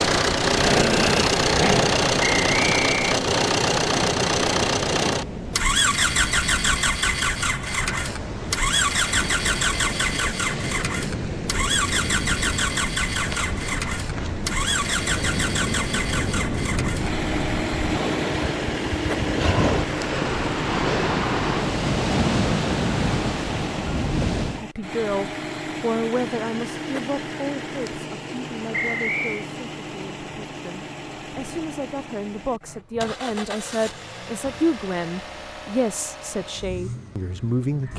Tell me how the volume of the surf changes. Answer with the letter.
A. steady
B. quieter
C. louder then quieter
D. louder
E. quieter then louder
D.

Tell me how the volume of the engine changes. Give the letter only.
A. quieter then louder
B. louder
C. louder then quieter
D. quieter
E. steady
D.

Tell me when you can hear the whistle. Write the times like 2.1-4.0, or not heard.
2.2-3.1, 28.7-29.4.